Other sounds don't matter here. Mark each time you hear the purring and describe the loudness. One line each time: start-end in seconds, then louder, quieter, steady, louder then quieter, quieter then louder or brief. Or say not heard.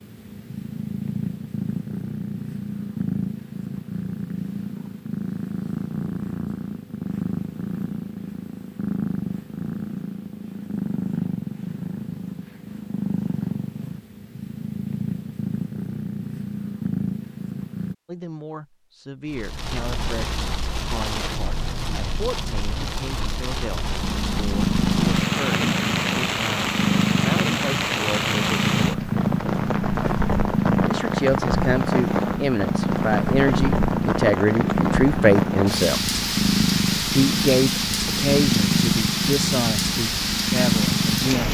0.0-17.9 steady
24.0-41.4 steady.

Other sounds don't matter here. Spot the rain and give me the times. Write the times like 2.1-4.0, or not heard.
19.2-41.4.